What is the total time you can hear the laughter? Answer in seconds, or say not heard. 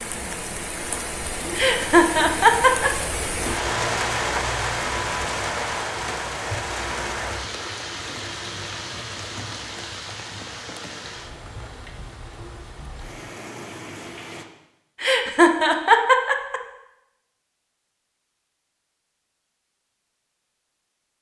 3 s.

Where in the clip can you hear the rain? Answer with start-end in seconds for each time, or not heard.
0.0-14.4.